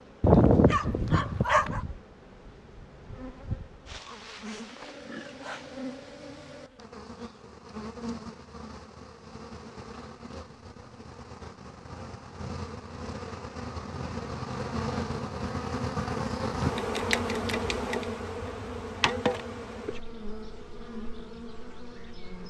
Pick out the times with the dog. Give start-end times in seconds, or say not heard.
0.2-1.8.